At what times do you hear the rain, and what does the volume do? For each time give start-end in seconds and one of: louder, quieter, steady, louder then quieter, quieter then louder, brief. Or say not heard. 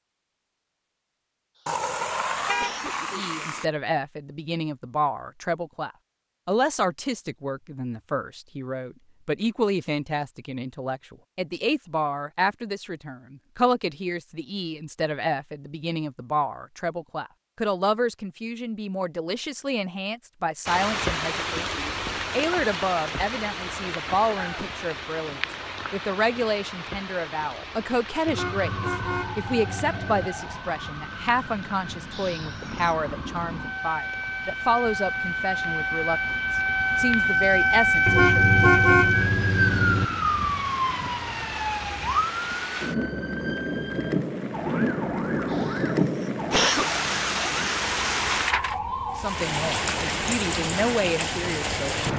20.6-52.1 quieter then louder.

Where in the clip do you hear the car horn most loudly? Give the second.
39 s.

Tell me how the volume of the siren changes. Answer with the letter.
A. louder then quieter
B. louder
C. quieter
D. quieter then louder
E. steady
A.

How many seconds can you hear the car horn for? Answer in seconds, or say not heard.
6 s.